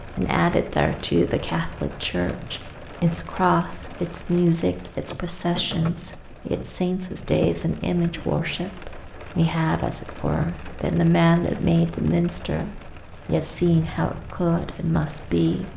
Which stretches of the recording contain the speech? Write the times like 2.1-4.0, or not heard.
0.0-15.7.